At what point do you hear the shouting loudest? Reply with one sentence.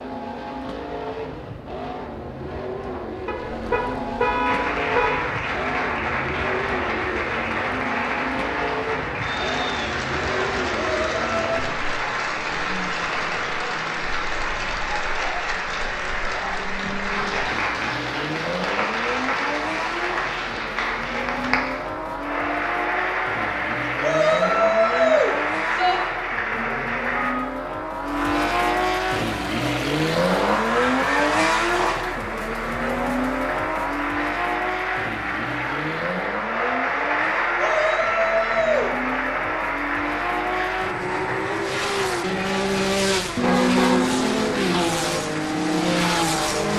The loudest moment of the shouting is at 25 seconds.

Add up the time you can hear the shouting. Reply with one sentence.
You can hear the shouting for 4 seconds altogether.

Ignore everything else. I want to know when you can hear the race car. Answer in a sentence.
The race car can be heard from 0.0 to 46.7 s.